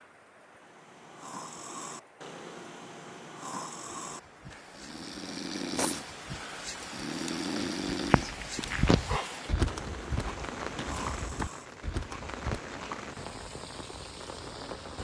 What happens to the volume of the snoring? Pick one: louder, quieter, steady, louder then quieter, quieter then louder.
louder then quieter.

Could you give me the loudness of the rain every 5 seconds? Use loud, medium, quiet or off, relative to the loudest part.
quiet, loud, loud.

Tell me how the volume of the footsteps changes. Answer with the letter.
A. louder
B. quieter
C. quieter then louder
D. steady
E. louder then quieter
C.